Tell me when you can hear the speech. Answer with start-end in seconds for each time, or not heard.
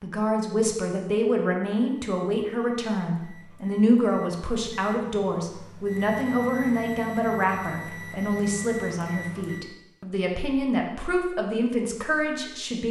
0.0-12.8.